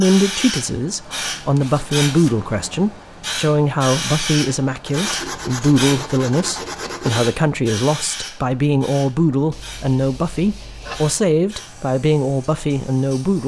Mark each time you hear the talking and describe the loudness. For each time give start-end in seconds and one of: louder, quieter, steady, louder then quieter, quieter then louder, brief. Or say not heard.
0.0-13.4 steady.